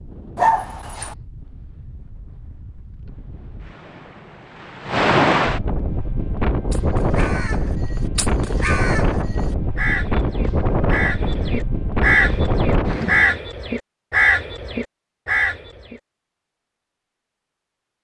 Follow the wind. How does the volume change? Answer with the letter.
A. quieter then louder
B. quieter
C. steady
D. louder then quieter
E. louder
E.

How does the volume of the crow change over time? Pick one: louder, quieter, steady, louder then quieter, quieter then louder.
louder.